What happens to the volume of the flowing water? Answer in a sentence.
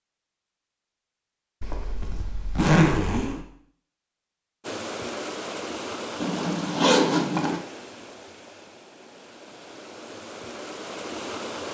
The loudness of the flowing water goes down, then up.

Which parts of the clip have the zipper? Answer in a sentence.
You can hear the zipper from 1.6 to 3.4 s and from 6.2 to 7.6 s.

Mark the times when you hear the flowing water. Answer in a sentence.
You can hear the flowing water from 4.6 to 11.6 s.